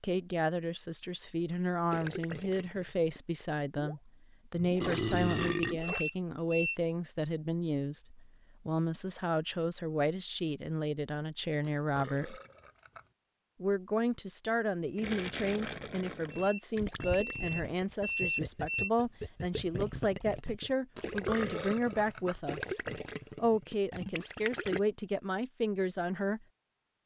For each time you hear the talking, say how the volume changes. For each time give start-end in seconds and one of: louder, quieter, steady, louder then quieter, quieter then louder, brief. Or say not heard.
0.0-12.4 steady
13.6-26.4 steady.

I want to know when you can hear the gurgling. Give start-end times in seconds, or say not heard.
1.5-6.1, 14.9-24.8.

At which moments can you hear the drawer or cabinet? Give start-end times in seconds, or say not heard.
not heard.